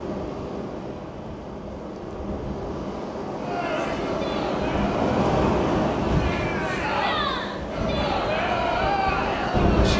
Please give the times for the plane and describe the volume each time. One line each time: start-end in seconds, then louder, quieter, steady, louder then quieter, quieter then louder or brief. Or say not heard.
not heard.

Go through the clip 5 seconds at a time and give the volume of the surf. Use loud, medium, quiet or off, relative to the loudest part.
medium, loud.